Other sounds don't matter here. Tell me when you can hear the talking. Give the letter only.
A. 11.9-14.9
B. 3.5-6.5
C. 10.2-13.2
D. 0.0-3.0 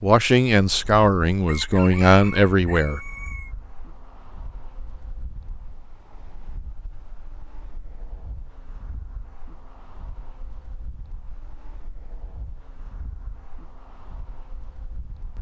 D.